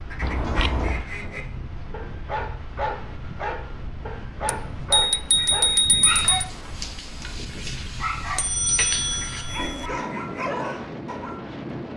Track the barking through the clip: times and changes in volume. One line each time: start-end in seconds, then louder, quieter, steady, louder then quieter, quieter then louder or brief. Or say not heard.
1.9-11.4 steady.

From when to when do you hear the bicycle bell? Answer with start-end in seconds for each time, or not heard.
0.2-1.1, 4.5-6.5, 8.3-9.9.